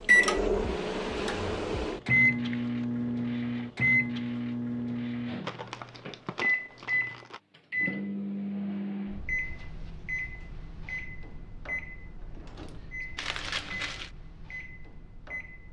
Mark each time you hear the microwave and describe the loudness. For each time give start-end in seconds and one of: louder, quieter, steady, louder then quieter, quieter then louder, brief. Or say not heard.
0.0-15.6 quieter.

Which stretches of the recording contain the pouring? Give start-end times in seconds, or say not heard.
not heard.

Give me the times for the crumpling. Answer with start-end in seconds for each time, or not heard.
2.0-2.9, 5.4-7.4, 13.2-14.1.